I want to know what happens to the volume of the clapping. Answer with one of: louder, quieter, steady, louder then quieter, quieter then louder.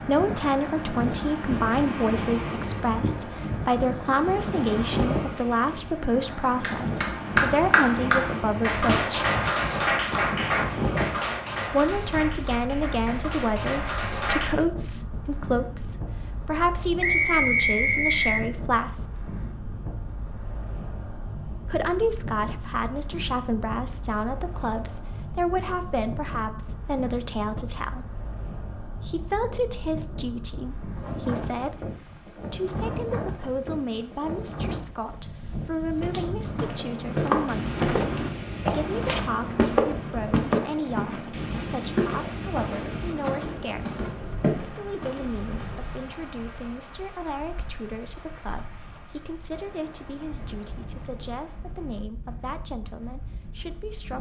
quieter.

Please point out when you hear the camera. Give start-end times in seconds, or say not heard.
not heard.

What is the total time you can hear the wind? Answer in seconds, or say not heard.
54 s.